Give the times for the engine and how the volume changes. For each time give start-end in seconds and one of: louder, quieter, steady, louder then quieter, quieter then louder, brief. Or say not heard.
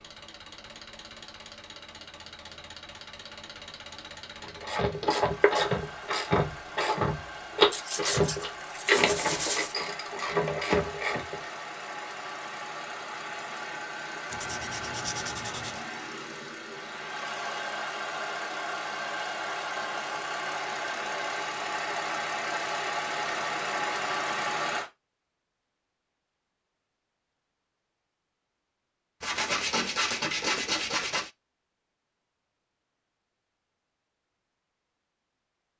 0.0-24.9 louder.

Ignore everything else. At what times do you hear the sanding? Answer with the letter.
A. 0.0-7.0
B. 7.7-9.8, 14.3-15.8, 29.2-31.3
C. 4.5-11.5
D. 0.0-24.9
B.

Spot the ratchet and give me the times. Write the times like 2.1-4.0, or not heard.
4.5-11.5.